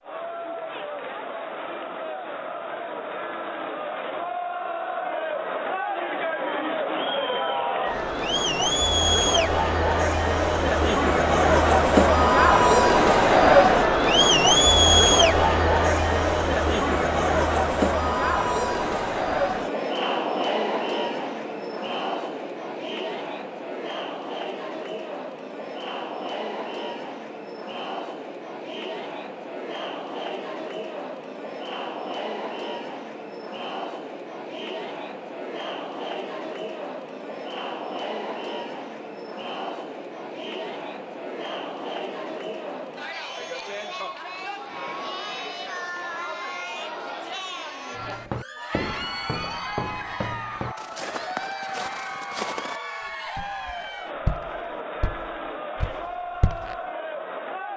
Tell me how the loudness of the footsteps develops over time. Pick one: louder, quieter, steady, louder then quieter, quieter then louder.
quieter.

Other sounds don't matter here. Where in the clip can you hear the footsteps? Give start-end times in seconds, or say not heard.
48.0-56.8.